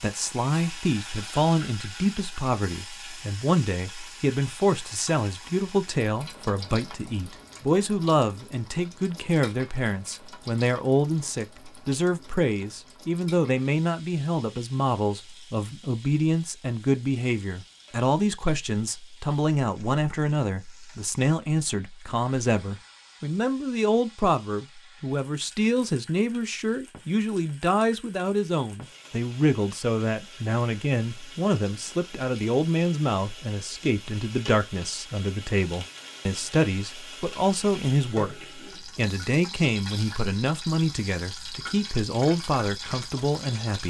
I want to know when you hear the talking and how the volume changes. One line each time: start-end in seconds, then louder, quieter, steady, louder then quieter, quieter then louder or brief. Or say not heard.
0.0-43.8 steady.